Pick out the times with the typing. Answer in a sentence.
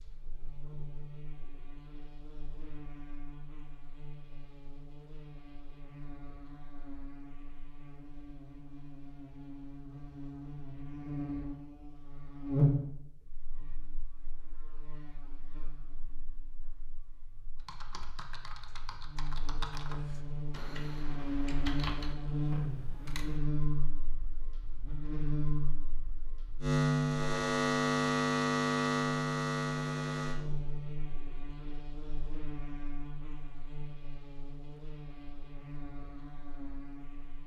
The typing can be heard from 17.6 to 23.4 s.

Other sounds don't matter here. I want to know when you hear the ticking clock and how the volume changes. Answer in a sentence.
The ticking clock can't be heard in this clip.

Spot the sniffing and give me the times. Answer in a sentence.
You can't hear the sniffing here.